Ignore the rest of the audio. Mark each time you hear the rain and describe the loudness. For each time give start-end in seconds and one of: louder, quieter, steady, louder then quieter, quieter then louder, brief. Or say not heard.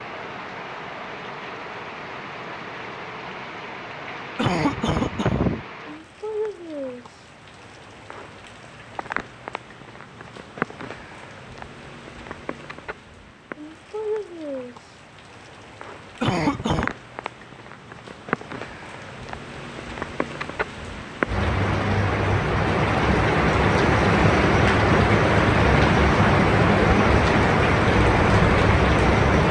0.0-29.4 louder.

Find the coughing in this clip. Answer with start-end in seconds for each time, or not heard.
4.3-5.6, 16.2-16.9.